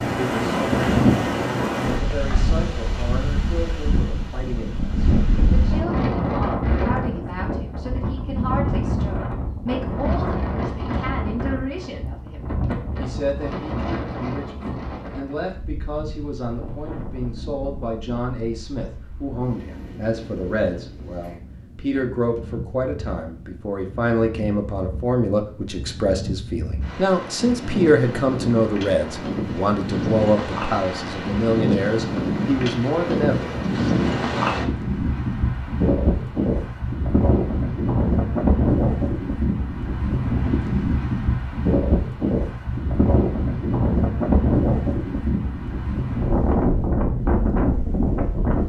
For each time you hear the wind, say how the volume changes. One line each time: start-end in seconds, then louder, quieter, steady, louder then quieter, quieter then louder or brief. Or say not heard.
0.0-48.6 quieter then louder.